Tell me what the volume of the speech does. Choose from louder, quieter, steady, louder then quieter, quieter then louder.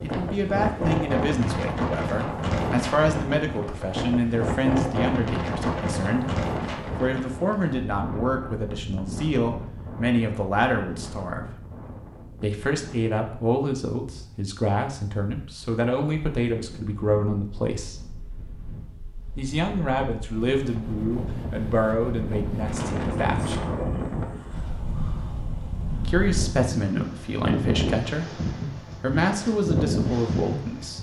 steady.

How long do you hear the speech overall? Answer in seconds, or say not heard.
26 s.